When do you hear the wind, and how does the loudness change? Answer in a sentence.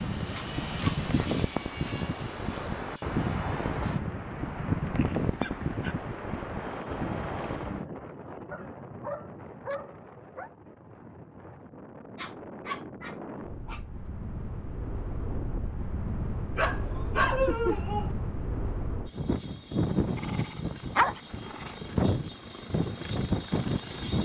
The wind can be heard from 0.0 to 24.1 s, getting quieter then louder.